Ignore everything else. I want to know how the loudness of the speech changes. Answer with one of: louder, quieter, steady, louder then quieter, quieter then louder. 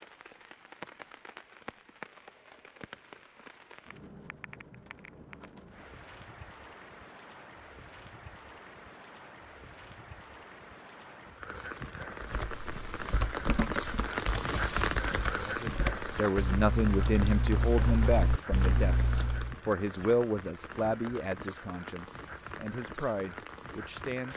quieter.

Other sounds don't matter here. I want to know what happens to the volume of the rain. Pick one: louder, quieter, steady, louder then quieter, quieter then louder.
louder then quieter.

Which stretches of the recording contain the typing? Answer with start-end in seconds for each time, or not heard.
12.2-19.6.